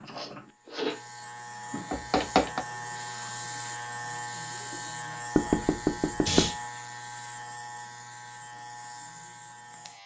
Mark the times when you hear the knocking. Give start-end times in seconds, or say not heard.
1.9-2.6, 5.3-6.5.